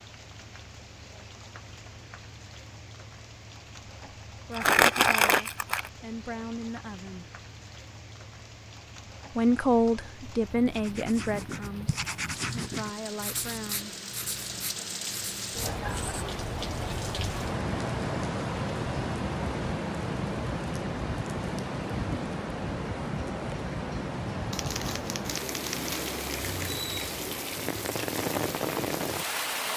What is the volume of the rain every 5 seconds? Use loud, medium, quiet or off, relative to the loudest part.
quiet, quiet, medium, loud, loud, loud.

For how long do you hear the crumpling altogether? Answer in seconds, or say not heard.
3 s.